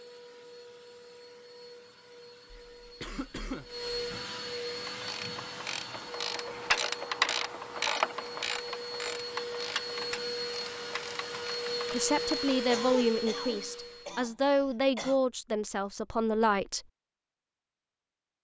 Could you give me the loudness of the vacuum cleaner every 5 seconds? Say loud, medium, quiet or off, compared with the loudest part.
medium, medium, loud, off.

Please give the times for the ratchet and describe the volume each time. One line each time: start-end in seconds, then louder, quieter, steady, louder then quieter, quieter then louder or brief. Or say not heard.
4.8-12.6 louder then quieter.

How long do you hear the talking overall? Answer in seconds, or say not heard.
5 s.